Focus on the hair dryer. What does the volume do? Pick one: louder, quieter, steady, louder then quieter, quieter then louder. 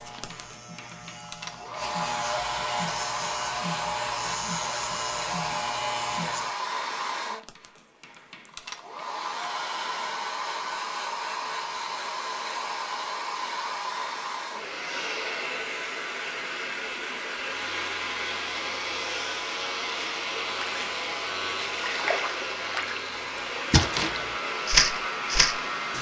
steady.